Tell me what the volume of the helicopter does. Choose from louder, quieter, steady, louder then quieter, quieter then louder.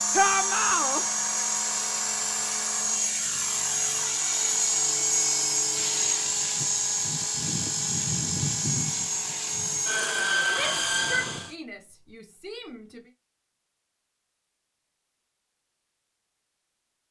steady.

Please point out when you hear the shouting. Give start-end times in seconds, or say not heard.
0.1-1.1, 10.5-13.0.